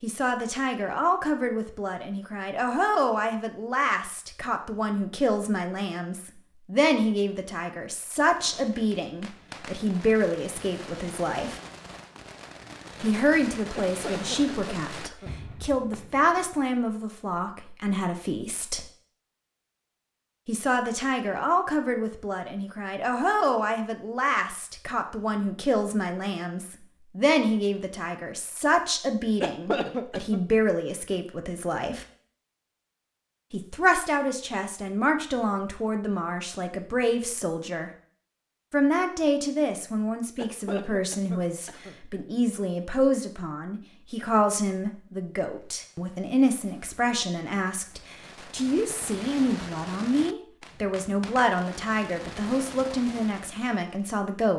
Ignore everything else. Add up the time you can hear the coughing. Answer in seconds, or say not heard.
4 s.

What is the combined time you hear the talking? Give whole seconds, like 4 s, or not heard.
49 s.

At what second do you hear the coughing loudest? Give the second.
30 s.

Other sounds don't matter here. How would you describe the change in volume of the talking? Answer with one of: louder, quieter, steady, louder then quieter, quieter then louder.
steady.